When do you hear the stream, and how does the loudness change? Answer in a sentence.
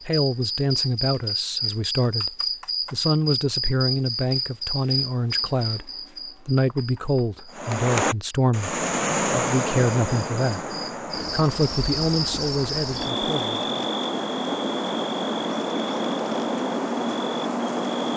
You can hear the stream from 7.5 to 18.1 s, getting quieter.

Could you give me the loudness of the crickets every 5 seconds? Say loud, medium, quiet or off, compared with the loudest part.
loud, medium, loud, loud.